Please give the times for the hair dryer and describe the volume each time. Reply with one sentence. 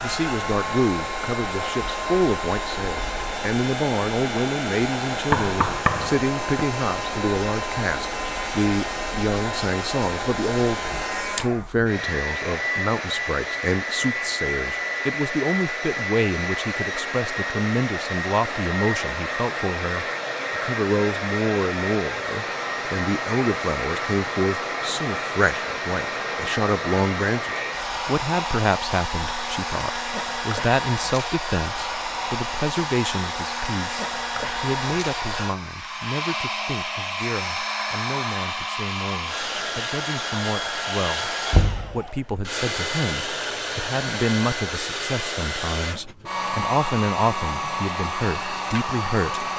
The hair dryer can be heard from 0.0 to 49.5 s, at a steady volume.